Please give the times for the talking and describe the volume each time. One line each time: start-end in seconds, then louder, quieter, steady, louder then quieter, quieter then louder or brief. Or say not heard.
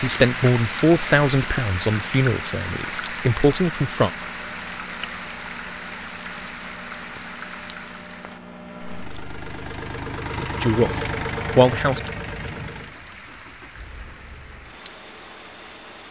0.0-4.1 quieter then louder
10.3-12.0 brief.